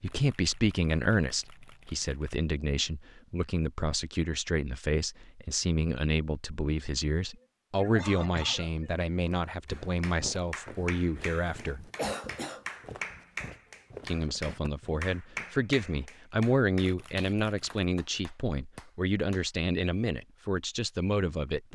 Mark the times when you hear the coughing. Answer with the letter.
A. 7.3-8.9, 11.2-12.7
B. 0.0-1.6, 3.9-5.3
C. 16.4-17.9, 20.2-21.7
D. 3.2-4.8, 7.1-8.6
A.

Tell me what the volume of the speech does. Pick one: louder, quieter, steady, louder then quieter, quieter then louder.
steady.